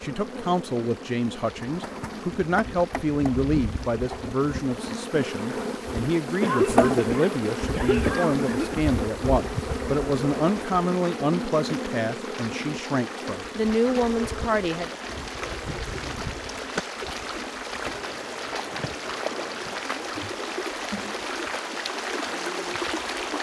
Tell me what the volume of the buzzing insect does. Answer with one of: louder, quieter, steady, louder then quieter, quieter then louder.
louder then quieter.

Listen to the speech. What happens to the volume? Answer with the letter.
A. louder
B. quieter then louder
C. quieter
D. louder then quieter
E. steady
E.